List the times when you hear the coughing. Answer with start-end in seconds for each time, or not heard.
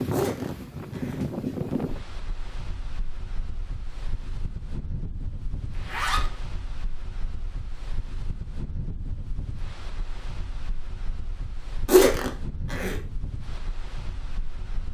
not heard.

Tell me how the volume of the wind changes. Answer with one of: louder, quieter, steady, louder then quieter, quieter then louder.
quieter.